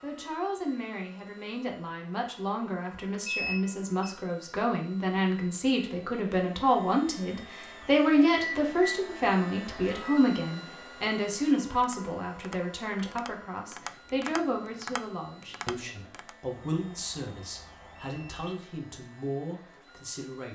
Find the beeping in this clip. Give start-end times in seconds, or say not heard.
3.2-4.2, 8.3-9.0, 16.8-18.6.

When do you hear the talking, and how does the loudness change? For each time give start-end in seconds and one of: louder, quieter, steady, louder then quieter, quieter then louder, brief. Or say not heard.
0.0-20.5 louder then quieter.